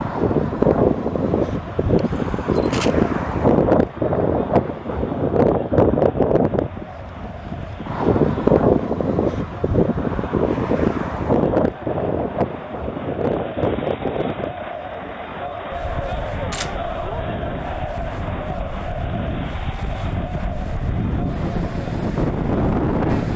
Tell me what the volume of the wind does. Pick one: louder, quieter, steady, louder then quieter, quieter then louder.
quieter then louder.